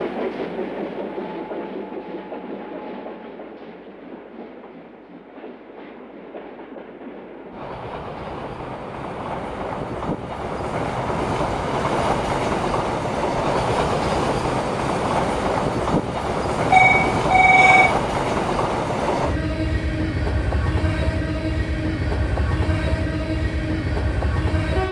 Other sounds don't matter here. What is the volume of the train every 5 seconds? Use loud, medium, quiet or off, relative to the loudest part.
medium, medium, loud, loud, loud.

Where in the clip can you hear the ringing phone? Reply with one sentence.
The ringing phone can be heard from 16.7 to 17.9 s.